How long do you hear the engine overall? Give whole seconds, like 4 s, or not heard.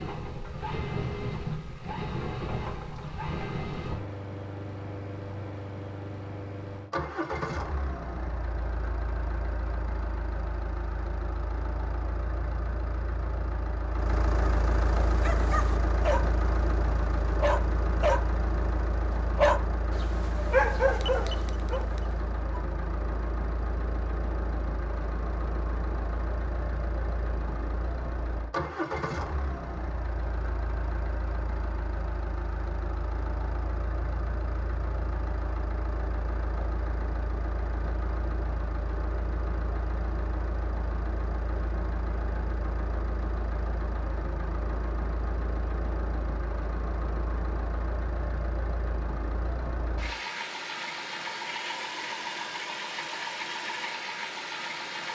55 s.